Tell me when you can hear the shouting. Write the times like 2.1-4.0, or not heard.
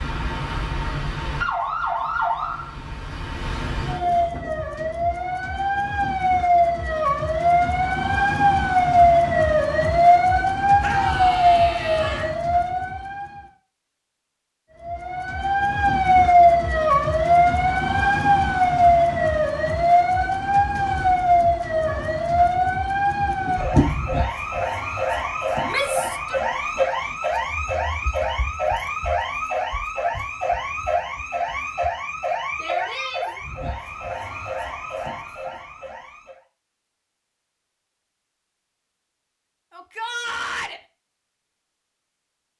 10.8-12.3, 25.6-26.4, 39.7-40.8.